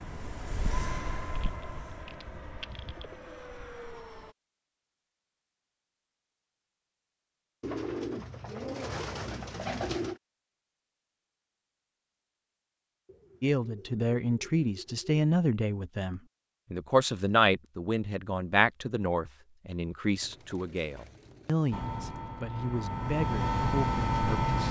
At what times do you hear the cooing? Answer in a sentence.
The cooing can be heard from 1.4 to 3.4 s, from 7.6 to 10.2 s, from 13.1 to 15.2 s and from 20.2 to 22.4 s.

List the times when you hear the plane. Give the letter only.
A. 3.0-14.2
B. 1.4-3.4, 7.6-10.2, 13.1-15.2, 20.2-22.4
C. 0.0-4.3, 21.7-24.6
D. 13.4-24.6
C.